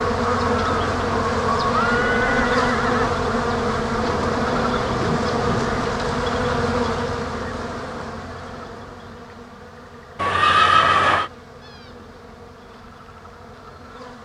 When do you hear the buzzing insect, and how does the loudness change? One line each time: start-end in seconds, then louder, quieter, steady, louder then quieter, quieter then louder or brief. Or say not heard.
0.0-14.2 quieter.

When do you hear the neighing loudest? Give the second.
11 s.